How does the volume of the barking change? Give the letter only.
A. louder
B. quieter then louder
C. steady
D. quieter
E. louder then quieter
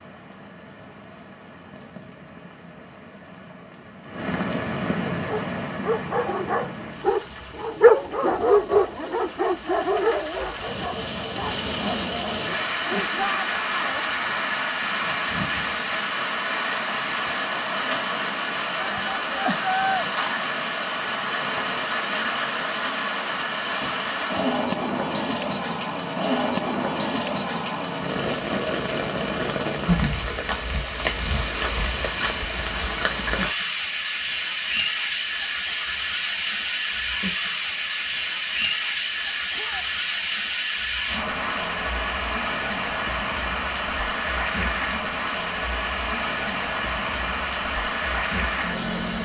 E.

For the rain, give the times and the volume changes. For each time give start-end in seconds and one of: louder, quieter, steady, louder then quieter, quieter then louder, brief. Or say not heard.
0.0-49.2 louder.